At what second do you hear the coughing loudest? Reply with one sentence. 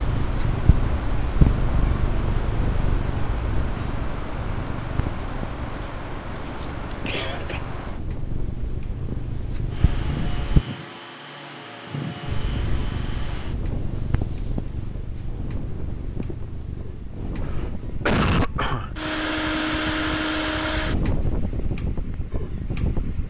The volume of the coughing peaks at 18 seconds.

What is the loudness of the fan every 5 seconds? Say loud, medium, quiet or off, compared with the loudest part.
medium, medium, medium, loud, loud.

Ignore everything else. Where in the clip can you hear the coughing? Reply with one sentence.
The coughing can be heard from 6.6 to 7.6 s and from 17.4 to 18.9 s.